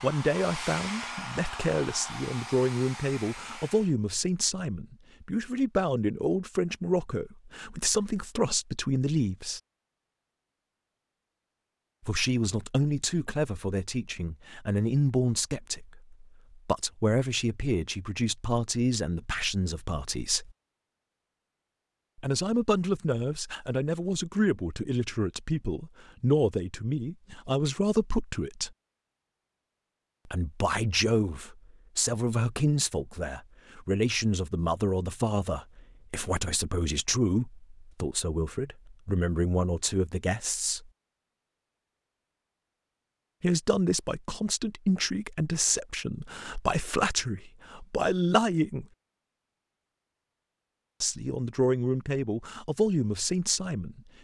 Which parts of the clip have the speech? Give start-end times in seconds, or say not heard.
0.0-9.6, 12.1-20.5, 22.1-28.7, 30.2-40.9, 43.4-48.9, 51.0-54.2.